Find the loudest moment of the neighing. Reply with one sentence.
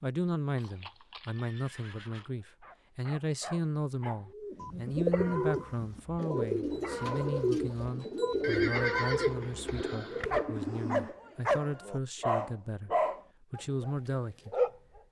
The loudest moment of the neighing is at 9 seconds.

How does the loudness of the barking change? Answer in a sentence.
The loudness of the barking goes up.